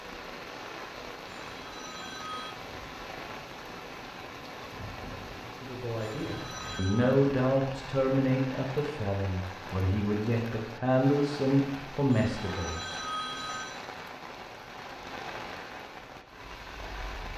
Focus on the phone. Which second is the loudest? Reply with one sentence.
The volume of the phone peaks at 13 seconds.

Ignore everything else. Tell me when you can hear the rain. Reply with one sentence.
The rain can be heard from 0.0 to 17.3 s.